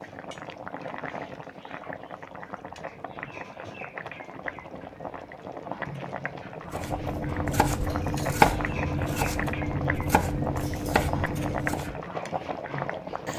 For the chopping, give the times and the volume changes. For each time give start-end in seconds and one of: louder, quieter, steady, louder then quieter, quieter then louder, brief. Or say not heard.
6.7-12.1 louder then quieter.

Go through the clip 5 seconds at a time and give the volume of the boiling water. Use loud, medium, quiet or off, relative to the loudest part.
medium, loud, loud.